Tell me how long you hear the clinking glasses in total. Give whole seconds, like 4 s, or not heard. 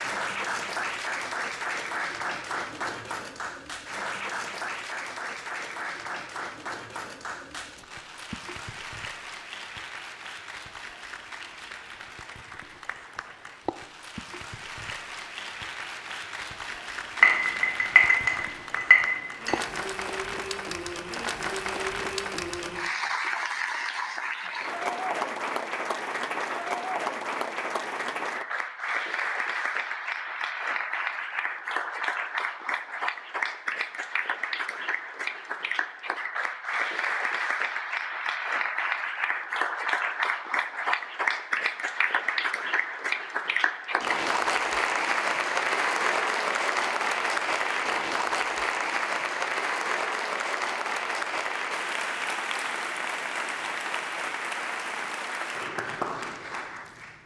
2 s.